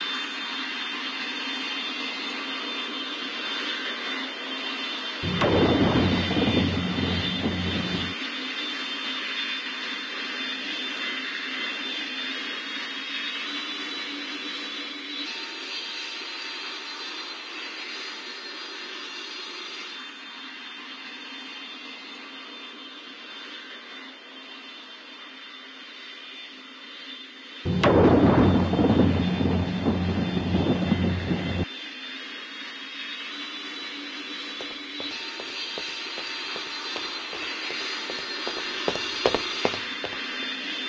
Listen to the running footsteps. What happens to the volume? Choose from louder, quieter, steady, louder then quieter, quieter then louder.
louder.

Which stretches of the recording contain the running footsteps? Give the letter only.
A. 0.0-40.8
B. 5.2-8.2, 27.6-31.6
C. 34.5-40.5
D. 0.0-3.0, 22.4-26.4
C.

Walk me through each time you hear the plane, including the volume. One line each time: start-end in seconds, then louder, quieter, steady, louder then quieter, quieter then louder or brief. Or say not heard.
0.0-40.8 quieter then louder.